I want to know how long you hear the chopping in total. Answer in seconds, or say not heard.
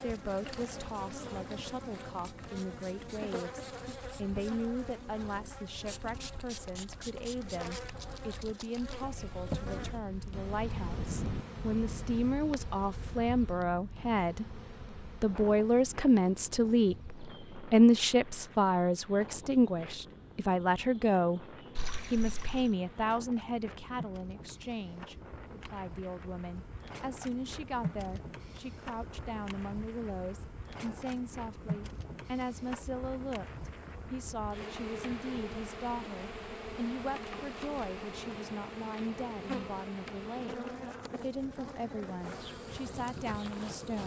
not heard.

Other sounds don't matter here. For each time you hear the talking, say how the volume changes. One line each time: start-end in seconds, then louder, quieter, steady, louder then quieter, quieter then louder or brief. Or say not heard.
0.0-44.0 louder then quieter.